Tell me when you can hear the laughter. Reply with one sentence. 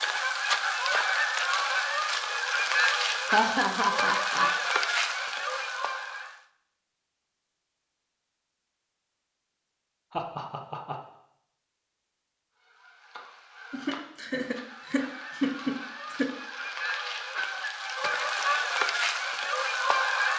The laughter can be heard from 3.2 to 4.5 s, from 10.1 to 11.0 s and from 13.7 to 16.3 s.